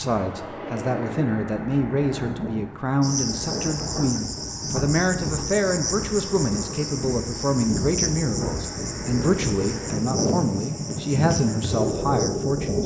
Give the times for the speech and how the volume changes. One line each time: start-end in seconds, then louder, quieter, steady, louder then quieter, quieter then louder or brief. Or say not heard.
0.0-12.8 steady.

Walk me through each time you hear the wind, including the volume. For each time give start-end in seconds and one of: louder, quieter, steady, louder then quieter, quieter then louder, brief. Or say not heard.
0.0-12.8 louder.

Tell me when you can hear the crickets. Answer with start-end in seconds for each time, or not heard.
3.0-12.8.